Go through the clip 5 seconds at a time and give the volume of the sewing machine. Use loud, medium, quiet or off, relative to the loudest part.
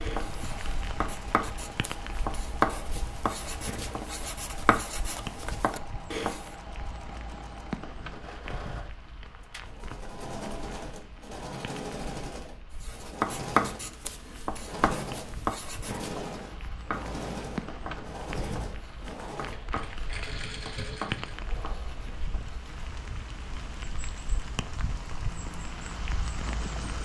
medium, medium, loud, loud, loud, off.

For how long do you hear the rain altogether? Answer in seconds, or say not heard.
27 s.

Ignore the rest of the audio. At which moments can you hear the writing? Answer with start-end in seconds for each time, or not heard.
0.0-6.5, 12.8-22.8.